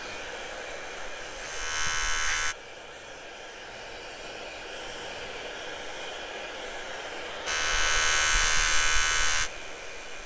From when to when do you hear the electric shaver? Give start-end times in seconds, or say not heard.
0.0-2.5, 7.5-10.2.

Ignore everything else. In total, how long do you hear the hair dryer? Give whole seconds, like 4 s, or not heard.
10 s.